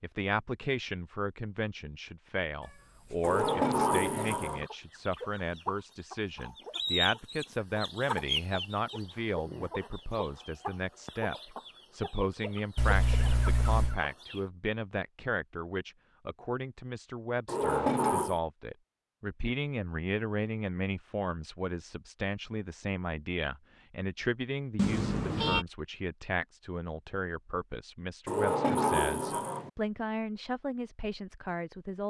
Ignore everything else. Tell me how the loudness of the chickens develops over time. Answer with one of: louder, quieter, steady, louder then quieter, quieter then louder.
louder then quieter.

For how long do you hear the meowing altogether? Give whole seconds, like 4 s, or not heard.
4 s.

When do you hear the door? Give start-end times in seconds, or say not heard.
3.2-4.7, 17.4-18.4, 28.2-29.7.